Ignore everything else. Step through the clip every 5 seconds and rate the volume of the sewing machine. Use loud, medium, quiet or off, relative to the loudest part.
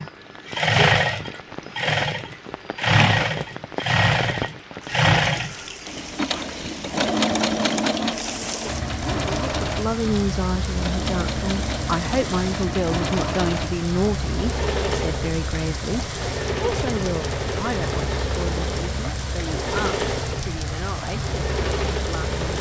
loud, loud, medium, medium, medium.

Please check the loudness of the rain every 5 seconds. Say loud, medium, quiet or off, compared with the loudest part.
medium, loud, loud, loud, loud.